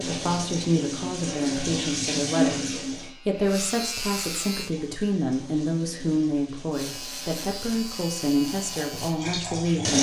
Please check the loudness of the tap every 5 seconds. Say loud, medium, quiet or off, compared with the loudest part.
loud, medium.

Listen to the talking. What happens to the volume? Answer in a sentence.
The volume of the talking stays about the same.